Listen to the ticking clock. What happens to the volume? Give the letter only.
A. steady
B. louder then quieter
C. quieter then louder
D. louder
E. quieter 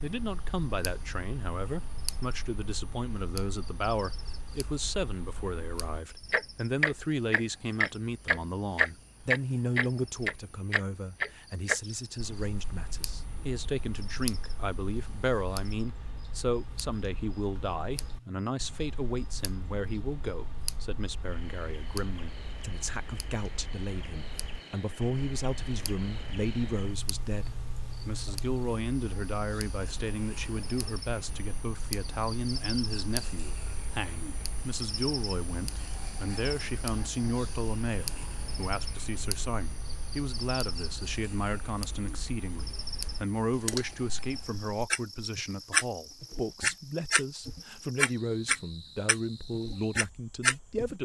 C.